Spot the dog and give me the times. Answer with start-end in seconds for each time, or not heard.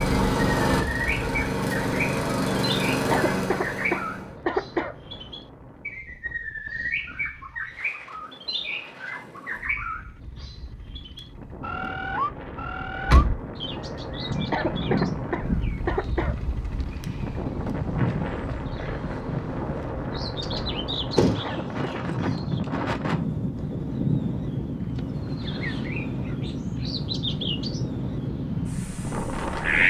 not heard.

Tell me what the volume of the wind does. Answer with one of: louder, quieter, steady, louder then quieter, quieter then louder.
louder.